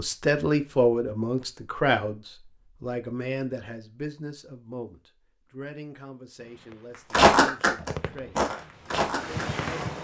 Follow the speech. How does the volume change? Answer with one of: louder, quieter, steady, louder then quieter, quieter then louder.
quieter.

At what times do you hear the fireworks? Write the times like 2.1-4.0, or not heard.
6.4-10.0.